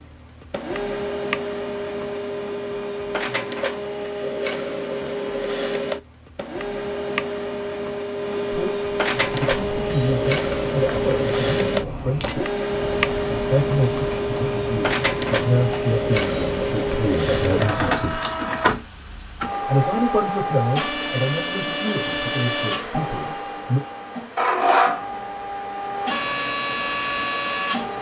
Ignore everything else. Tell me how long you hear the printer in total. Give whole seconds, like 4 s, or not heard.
28 s.